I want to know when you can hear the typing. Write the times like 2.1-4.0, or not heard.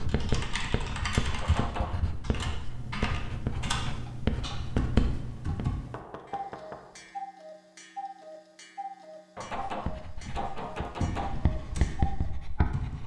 0.0-5.9, 11.0-13.0.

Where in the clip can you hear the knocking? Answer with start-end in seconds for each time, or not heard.
1.4-2.0, 5.8-7.1, 9.3-11.3.